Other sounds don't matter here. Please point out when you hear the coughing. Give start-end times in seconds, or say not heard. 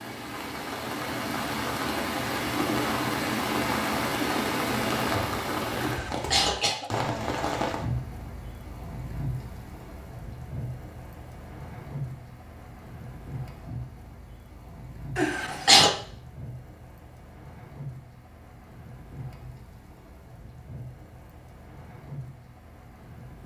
5.8-6.9, 15.2-15.9.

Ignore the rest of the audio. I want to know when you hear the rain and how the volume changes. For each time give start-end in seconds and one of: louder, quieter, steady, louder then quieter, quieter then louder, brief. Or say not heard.
0.0-23.4 quieter.